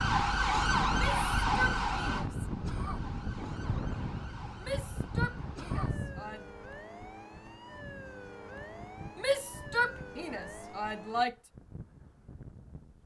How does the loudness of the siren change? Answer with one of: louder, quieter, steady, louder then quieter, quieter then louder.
quieter.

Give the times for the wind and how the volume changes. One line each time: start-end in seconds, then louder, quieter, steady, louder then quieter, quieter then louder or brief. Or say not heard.
0.0-13.0 quieter.